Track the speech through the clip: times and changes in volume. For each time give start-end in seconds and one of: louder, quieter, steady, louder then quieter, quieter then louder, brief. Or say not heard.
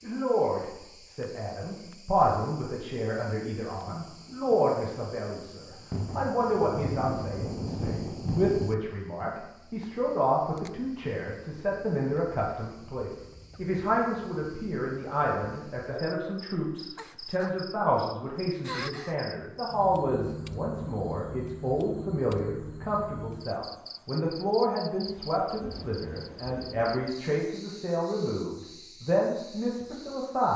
0.0-30.5 steady.